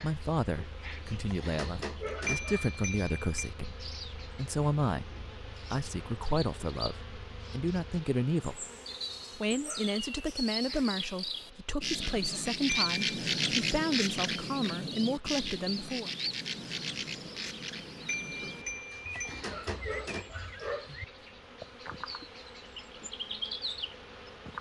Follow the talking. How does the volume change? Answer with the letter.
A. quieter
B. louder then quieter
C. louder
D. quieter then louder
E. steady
E.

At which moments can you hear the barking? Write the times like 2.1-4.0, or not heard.
0.6-2.6, 18.4-20.9.